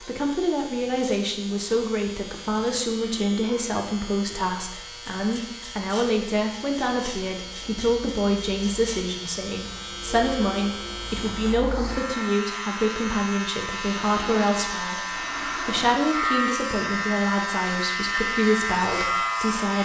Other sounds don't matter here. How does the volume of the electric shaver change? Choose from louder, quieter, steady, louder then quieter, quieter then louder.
louder.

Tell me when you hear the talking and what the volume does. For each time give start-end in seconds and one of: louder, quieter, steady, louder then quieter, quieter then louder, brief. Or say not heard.
0.0-19.8 steady.